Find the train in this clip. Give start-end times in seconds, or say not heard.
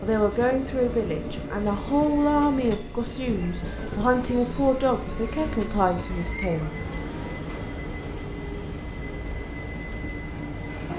0.0-10.9.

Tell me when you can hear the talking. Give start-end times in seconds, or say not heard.
0.0-6.7.